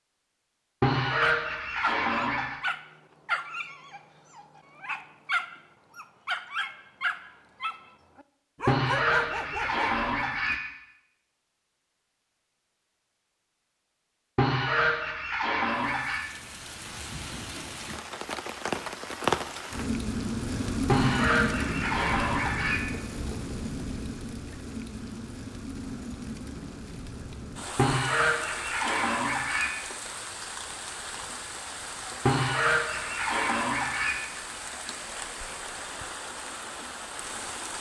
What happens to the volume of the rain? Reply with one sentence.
The volume of the rain goes down.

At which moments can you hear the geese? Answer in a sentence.
The geese can be heard from 0.8 to 2.5 s, from 8.7 to 10.6 s, from 14.3 to 16.2 s, from 20.9 to 22.8 s, from 27.8 to 29.7 s and from 32.2 to 34.1 s.